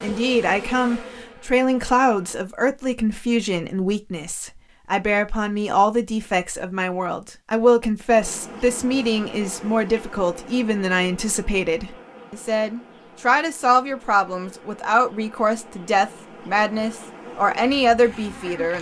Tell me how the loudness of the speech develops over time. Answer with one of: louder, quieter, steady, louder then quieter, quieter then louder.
steady.